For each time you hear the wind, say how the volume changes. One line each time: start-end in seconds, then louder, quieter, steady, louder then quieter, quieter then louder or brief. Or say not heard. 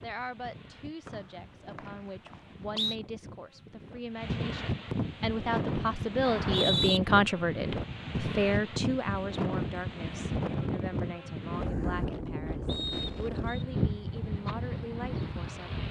0.0-15.8 louder.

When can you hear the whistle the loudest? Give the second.
7 s.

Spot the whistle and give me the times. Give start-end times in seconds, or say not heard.
1.1-3.0, 6.2-7.0, 12.7-13.7.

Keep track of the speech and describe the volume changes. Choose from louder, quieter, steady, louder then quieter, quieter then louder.
louder then quieter.